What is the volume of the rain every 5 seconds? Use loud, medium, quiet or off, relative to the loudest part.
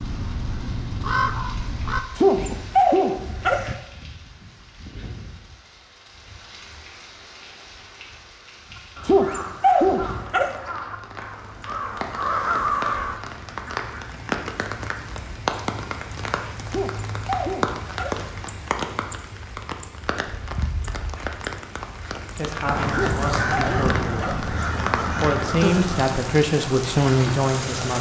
quiet, quiet, loud, loud, loud, loud.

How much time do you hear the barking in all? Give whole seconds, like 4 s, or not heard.
6 s.